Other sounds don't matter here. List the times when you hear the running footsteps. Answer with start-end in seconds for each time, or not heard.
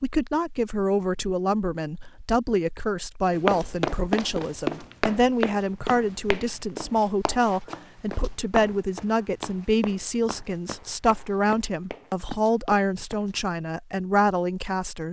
3.5-13.3.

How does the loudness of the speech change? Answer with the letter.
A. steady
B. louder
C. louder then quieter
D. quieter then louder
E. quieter
A.